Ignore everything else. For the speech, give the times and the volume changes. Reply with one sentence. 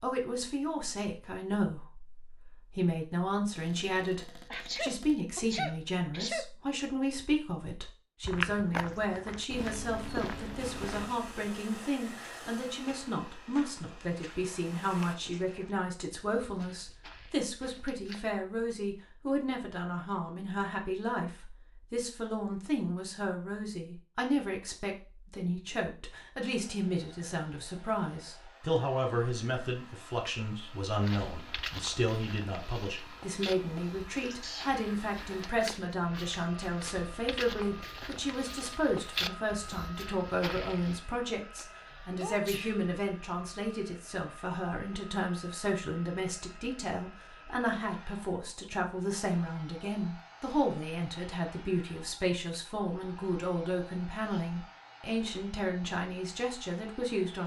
The speech can be heard from 0.0 to 57.4 s, at a steady volume.